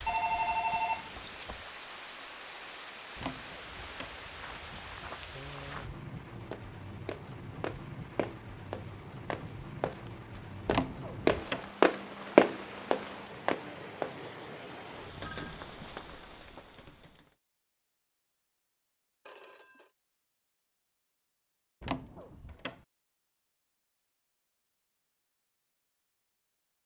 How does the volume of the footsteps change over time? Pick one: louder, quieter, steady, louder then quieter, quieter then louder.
louder.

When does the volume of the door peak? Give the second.
11 s.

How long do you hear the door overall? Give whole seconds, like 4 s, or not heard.
3 s.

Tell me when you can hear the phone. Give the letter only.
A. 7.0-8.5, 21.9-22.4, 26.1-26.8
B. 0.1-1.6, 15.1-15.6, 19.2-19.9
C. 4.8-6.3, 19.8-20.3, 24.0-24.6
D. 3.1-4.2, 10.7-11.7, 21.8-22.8
B.